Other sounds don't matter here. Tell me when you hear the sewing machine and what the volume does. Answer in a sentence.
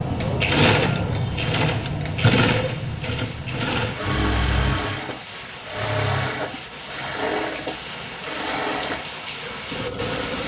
The sewing machine can be heard from 0.0 to 10.4 s, getting quieter.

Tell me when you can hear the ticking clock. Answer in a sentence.
You can't hear the ticking clock here.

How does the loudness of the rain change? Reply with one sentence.
The loudness of the rain goes up.